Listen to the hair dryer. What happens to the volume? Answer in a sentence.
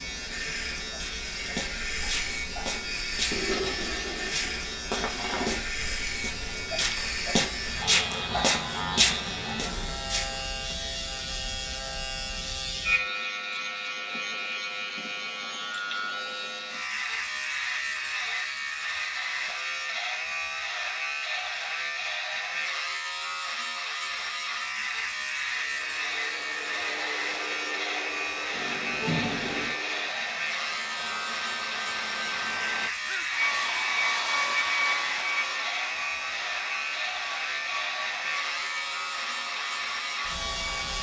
The loudness of the hair dryer goes up, then down.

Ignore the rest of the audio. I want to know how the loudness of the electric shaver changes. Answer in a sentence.
The volume of the electric shaver stays about the same.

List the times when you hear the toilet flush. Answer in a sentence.
You can hear the toilet flush from 3.3 to 5.6 s and from 28.5 to 29.8 s.